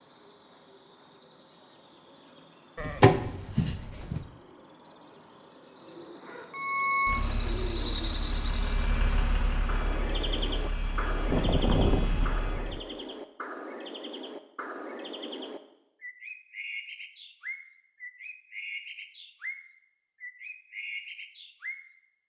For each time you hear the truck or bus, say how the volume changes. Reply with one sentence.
You can hear the truck or bus from 6.5 to 12.8 s, getting quieter.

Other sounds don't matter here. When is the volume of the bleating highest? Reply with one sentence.
The loudest moment of the bleating is at 3 seconds.